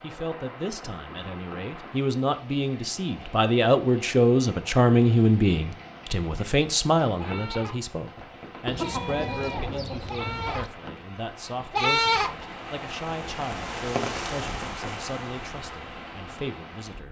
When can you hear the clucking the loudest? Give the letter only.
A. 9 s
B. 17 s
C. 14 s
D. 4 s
A.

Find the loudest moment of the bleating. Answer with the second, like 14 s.
12 s.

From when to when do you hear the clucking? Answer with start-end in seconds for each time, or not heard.
8.7-10.7.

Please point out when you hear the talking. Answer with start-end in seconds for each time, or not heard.
0.0-17.0.